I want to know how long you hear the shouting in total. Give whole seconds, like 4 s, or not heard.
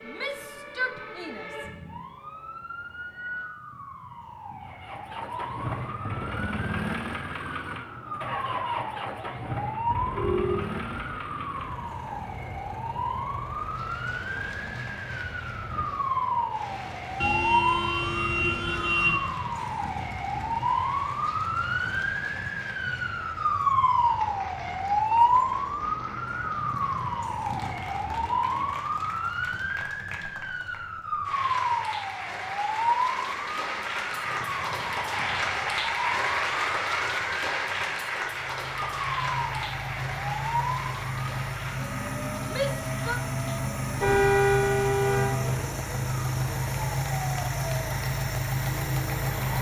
2 s.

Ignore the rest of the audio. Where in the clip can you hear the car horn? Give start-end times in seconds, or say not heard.
9.9-11.2, 17.2-19.2, 44.0-45.4.